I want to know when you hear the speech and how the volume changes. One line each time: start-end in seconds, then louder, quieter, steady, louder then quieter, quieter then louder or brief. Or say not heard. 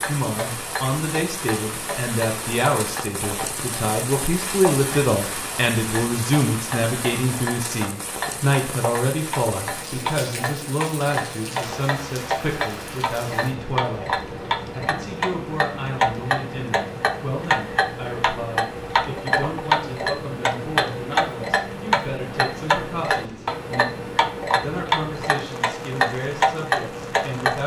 0.1-27.6 quieter.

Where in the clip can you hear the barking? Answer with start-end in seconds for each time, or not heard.
not heard.